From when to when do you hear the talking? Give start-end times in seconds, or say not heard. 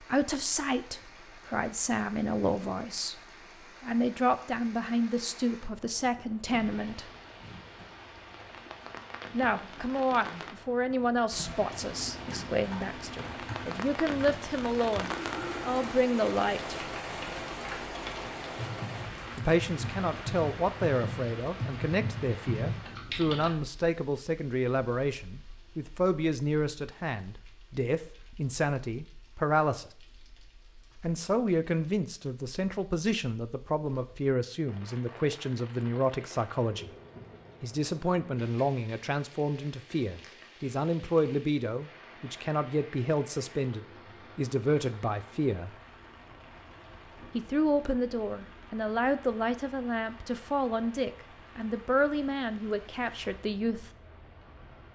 0.0-7.1, 9.3-16.8, 19.4-29.9, 31.0-37.0, 37.6-45.8, 47.3-53.9.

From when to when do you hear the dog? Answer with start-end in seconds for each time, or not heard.
not heard.